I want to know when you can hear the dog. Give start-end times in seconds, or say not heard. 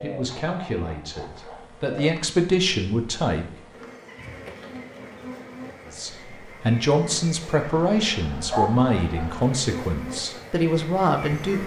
0.4-1.7, 8.5-9.4.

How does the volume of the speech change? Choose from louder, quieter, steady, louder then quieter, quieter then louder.
louder.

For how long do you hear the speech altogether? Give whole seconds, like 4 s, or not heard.
9 s.